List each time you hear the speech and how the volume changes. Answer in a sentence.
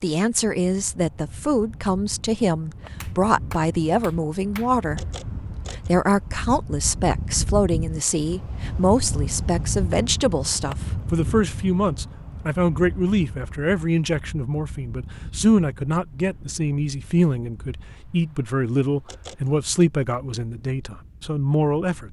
The speech can be heard from 0.0 to 5.0 s, at a steady volume; and from 5.8 to 22.0 s, at a steady volume.